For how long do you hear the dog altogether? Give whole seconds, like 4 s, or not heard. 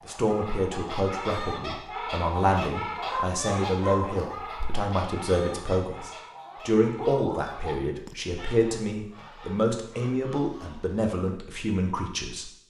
3 s.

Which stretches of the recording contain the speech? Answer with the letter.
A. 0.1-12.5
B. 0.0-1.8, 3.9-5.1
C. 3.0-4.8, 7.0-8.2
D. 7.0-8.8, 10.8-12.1
A.